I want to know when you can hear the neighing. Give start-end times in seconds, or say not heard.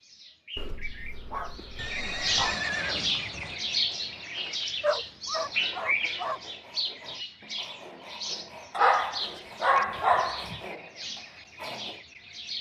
1.8-3.5.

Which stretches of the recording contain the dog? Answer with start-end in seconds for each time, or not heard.
0.6-2.5, 4.8-6.4, 8.7-10.6.